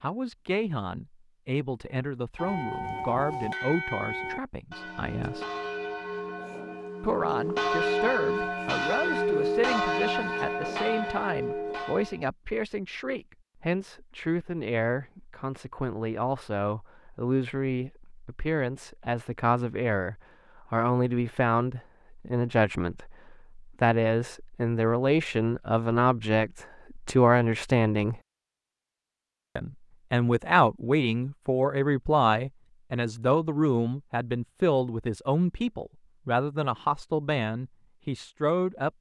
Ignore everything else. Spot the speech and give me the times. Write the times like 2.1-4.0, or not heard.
0.0-5.5, 7.0-28.1, 29.6-38.9.